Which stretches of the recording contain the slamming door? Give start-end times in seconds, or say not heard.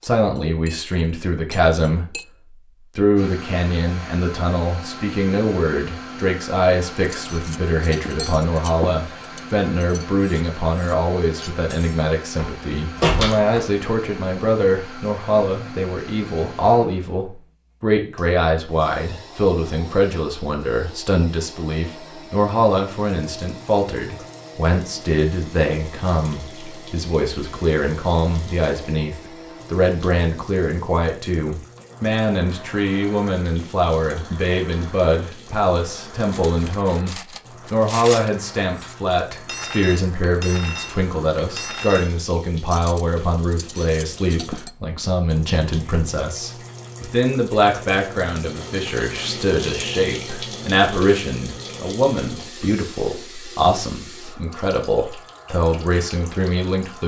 12.3-13.9.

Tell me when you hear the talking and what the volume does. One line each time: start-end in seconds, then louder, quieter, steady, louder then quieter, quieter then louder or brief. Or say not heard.
0.0-2.1 brief
3.0-57.0 steady.